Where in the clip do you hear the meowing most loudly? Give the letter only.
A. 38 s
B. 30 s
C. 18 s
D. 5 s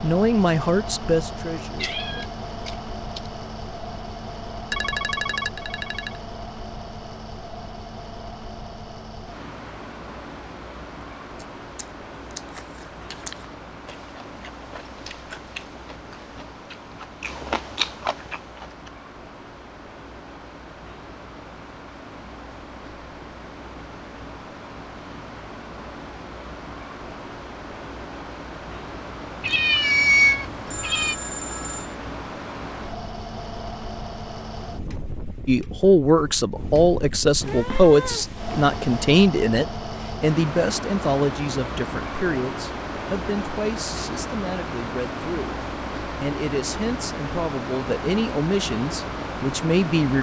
B.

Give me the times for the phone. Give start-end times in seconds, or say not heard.
4.7-6.2, 30.6-31.9.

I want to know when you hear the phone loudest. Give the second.
5 s.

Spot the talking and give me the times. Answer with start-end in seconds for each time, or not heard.
0.0-2.2, 35.5-50.1.